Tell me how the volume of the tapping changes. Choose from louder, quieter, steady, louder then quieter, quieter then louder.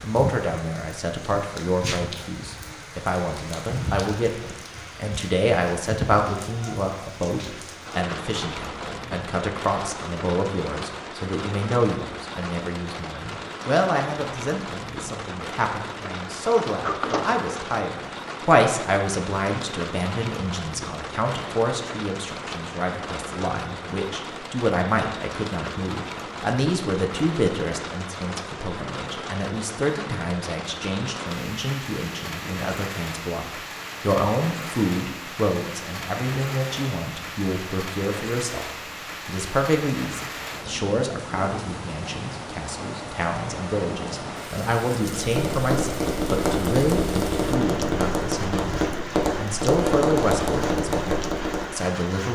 steady.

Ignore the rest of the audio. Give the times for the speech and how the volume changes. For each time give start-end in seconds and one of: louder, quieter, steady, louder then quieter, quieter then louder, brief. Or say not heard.
0.0-52.3 steady.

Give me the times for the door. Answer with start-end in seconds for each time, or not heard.
16.4-17.4.